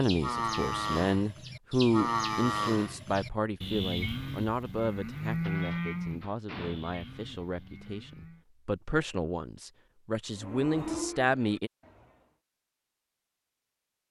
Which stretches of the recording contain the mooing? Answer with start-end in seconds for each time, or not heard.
0.0-8.4, 10.3-12.3.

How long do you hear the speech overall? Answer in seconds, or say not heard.
12 s.